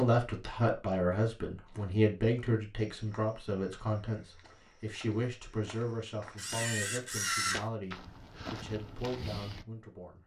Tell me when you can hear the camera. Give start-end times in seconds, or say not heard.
6.3-7.6.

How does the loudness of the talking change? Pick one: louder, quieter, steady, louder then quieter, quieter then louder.
quieter.